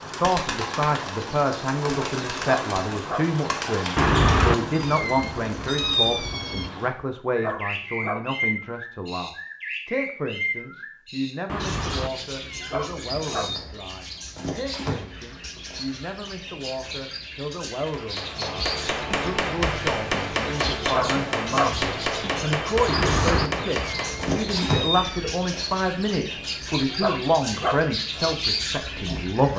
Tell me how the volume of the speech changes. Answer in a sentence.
The loudness of the speech goes down, then up.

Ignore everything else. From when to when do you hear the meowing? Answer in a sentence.
The meowing can be heard from 4.0 to 6.7 s, from 11.4 to 13.6 s and from 22.9 to 25.4 s.